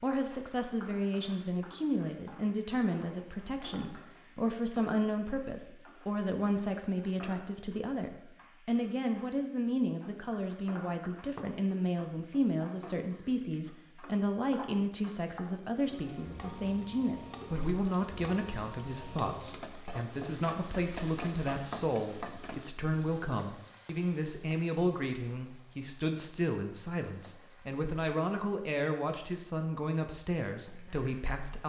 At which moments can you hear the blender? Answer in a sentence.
The blender can't be heard in this clip.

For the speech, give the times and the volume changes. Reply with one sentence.
The speech can be heard from 0.0 to 31.6 s, at a steady volume.